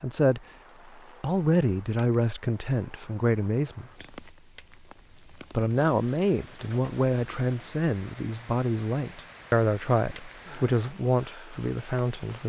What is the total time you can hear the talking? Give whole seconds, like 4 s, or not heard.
10 s.